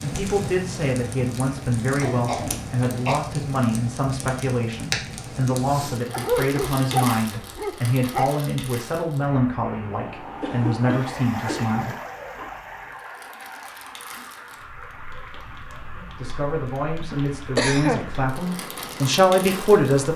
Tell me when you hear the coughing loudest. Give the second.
18 s.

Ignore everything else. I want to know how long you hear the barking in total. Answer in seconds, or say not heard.
2 s.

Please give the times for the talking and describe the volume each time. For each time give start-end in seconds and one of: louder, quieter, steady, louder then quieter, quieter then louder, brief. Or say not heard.
0.0-11.9 steady
15.9-20.1 louder.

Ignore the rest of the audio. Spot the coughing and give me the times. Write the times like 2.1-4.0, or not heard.
2.0-3.2, 10.4-11.8, 17.0-18.1.